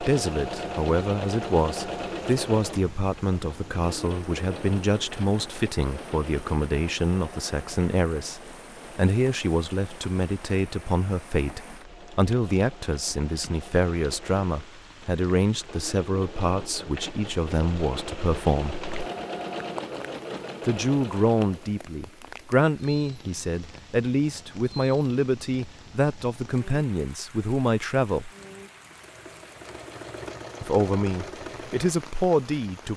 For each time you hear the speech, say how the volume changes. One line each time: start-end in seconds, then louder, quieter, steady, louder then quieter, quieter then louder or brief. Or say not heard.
0.0-18.8 steady
20.6-28.3 steady
30.6-32.9 brief.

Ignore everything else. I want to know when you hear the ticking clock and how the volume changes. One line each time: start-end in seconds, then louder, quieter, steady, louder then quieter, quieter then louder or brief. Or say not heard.
not heard.